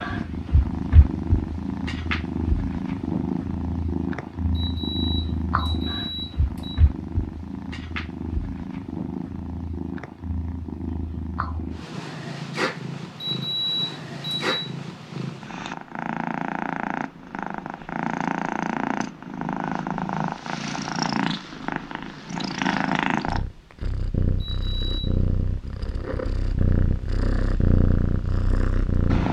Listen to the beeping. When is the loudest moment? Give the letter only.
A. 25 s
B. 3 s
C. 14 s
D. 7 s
C.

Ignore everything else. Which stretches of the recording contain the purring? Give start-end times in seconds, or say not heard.
0.0-29.2.